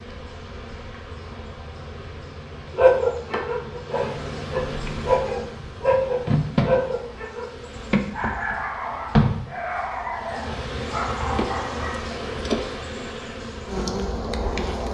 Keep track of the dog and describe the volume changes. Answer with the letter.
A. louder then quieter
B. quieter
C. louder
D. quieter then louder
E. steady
A.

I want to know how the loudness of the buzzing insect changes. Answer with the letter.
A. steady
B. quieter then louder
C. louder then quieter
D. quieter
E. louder
E.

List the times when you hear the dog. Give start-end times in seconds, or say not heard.
2.8-12.1.